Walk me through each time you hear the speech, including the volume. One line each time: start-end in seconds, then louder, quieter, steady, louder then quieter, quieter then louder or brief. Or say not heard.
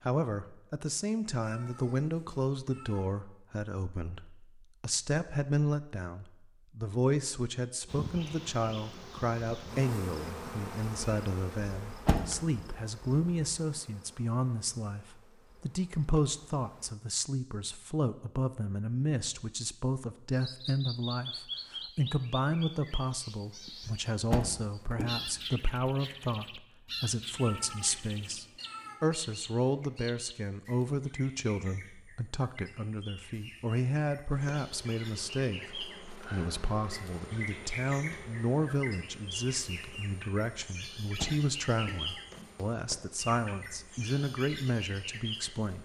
0.1-45.8 steady.